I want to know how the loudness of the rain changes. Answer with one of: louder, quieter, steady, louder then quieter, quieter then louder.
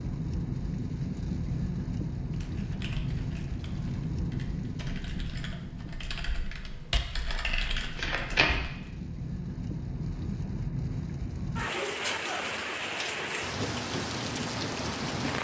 quieter then louder.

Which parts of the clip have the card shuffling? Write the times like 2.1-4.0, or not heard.
7.5-8.5.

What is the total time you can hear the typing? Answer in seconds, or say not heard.
7 s.